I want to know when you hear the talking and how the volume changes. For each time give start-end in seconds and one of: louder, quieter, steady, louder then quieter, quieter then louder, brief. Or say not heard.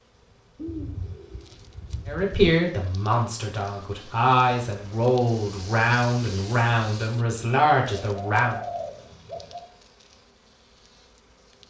2.0-8.6 steady.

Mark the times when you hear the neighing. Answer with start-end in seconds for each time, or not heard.
not heard.